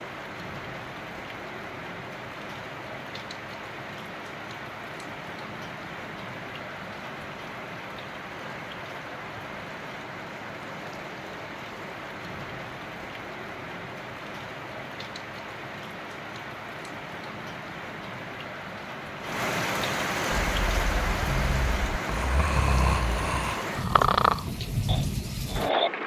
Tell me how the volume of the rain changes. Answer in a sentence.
The volume of the rain goes up.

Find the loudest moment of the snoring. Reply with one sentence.
The loudest moment of the snoring is at 24 seconds.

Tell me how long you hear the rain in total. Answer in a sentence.
You can hear the rain for 26 seconds altogether.